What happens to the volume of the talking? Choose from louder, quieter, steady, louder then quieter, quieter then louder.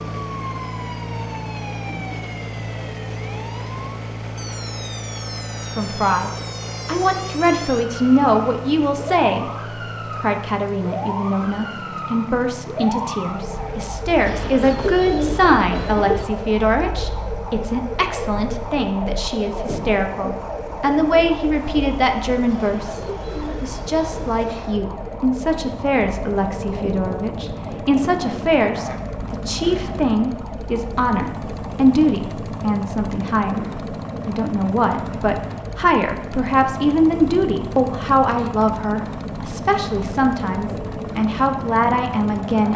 steady.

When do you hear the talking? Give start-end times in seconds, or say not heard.
5.6-33.6, 34.2-42.7.